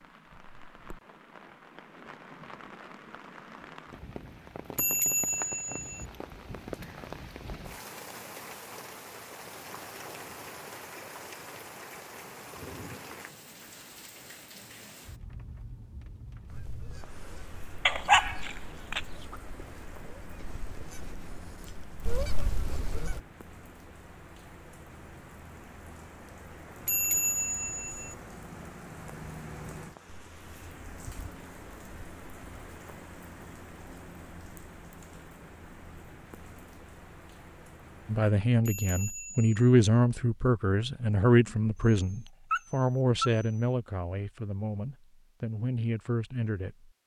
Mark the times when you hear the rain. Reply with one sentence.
You can hear the rain from 0.0 to 38.4 s.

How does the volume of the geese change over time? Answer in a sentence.
The volume of the geese goes up.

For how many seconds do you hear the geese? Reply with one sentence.
The geese can be heard for 7 seconds in total.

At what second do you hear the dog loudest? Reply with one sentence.
The volume of the dog peaks at 18 seconds.